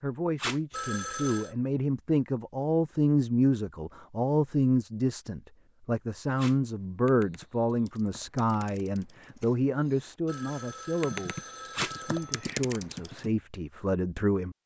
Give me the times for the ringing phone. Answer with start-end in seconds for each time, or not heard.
0.7-1.6, 10.2-12.5.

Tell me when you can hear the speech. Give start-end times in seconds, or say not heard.
0.0-14.6.